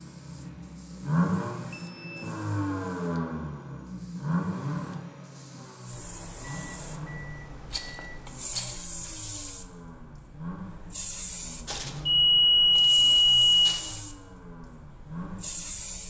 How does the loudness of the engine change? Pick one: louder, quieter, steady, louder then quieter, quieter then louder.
quieter.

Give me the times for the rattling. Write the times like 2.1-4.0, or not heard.
7.7-8.8.